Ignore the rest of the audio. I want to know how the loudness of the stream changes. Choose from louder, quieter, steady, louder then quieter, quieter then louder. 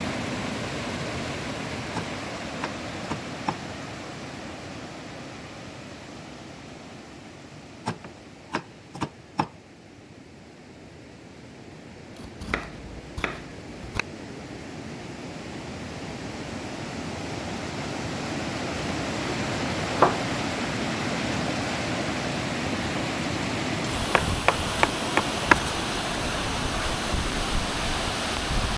quieter then louder.